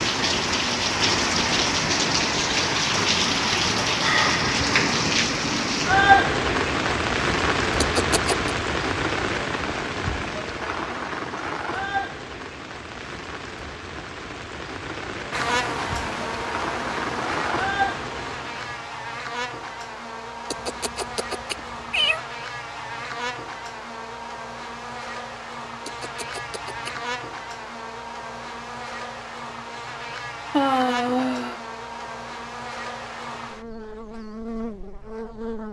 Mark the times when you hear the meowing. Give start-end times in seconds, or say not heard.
7.8-8.5, 20.5-22.2, 25.9-27.0.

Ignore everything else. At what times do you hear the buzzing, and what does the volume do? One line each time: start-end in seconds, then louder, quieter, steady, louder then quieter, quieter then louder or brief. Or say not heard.
15.3-35.6 steady.